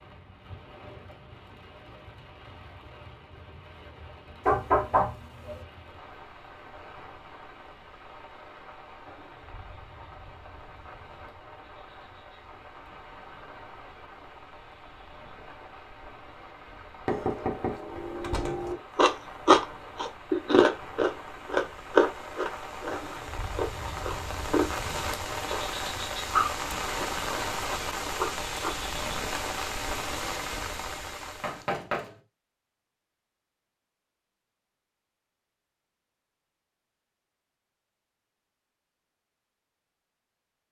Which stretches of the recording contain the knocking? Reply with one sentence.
You can hear the knocking from 4.5 to 5.6 s, from 17.1 to 18.8 s and from 31.4 to 32.1 s.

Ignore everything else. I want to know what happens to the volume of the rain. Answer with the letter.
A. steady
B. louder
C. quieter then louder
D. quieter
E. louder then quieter
B.